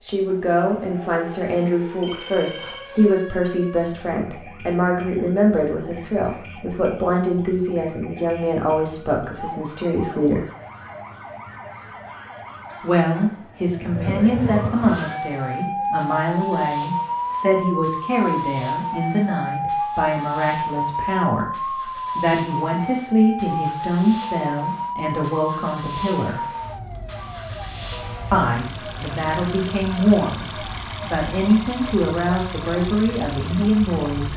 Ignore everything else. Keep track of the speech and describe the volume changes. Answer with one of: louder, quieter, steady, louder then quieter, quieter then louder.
steady.